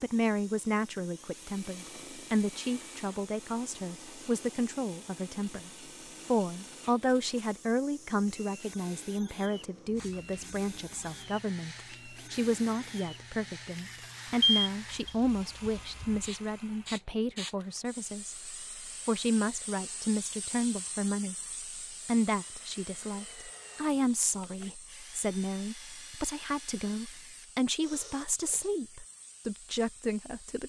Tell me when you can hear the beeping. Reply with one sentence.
The beeping can be heard from 14.4 to 15.1 s.